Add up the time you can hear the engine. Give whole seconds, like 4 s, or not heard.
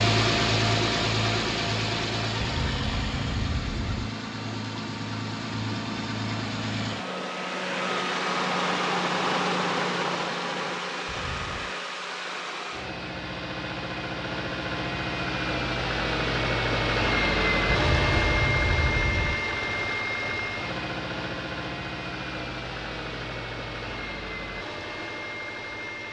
26 s.